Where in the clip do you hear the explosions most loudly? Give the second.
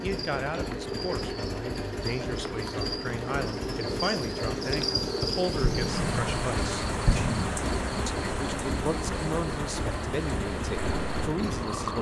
7 s.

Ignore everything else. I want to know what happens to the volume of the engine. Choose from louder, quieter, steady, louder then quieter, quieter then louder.
steady.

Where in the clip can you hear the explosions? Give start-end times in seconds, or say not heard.
5.6-7.5.